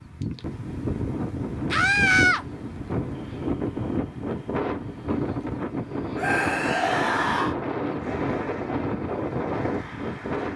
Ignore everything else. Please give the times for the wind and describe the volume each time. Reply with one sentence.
The wind can be heard from 0.0 to 10.5 s, at a steady volume.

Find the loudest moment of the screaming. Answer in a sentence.
The volume of the screaming peaks at 2 seconds.